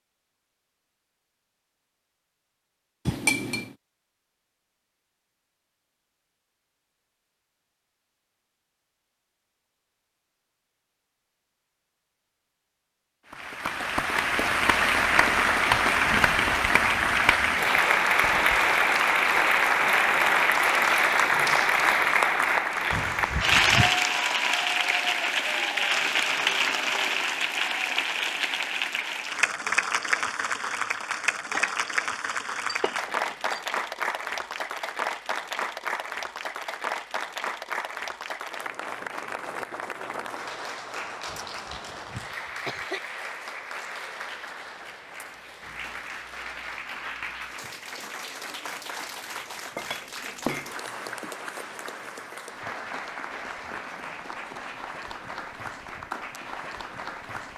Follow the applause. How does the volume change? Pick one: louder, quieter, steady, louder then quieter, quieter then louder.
quieter.